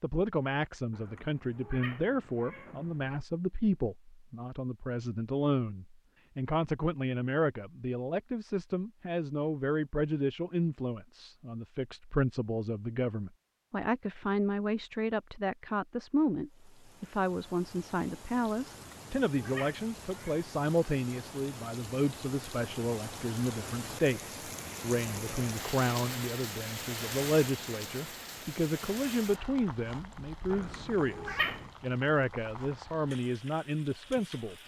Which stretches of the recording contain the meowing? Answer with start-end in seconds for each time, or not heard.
0.9-3.2, 18.6-20.4, 30.5-31.7.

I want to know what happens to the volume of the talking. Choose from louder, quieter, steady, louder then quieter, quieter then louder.
steady.